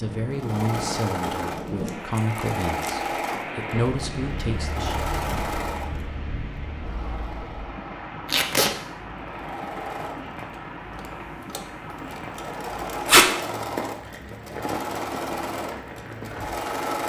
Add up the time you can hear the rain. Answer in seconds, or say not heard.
17 s.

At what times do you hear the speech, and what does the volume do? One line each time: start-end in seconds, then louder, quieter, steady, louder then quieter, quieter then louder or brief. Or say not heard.
0.0-5.0 quieter then louder.